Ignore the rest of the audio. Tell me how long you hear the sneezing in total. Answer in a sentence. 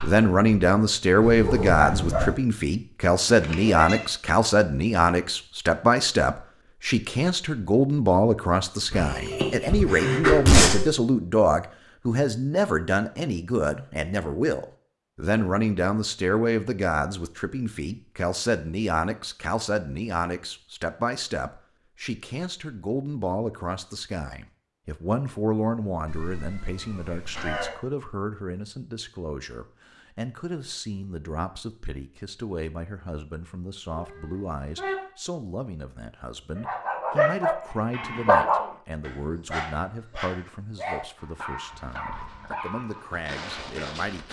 You can hear the sneezing for 2 seconds altogether.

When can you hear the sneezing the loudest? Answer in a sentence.
The loudest moment of the sneezing is at 10 seconds.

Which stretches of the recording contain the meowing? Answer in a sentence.
The meowing can be heard from 3.2 to 4.1 s, from 26.1 to 27.8 s and from 33.9 to 35.0 s.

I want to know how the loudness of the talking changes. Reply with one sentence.
The volume of the talking goes down.